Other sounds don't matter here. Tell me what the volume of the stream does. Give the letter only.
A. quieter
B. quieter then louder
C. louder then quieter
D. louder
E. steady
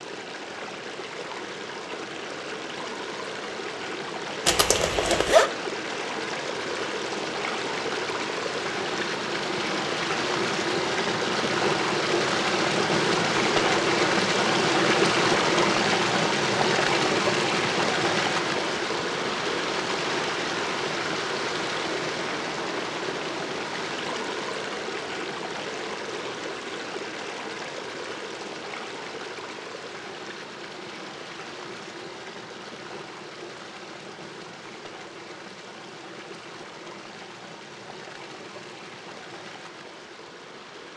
C.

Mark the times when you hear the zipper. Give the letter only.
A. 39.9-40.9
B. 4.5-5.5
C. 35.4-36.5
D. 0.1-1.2
B.